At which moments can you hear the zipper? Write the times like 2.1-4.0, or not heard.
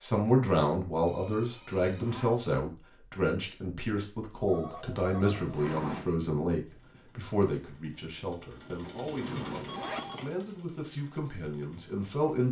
1.9-2.4, 5.3-6.2, 8.8-10.3.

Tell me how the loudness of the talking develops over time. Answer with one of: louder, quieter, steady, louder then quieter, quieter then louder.
quieter.